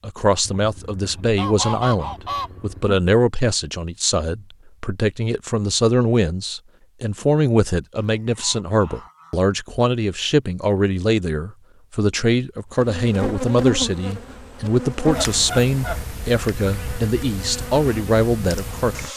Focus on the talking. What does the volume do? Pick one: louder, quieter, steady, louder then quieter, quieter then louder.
steady.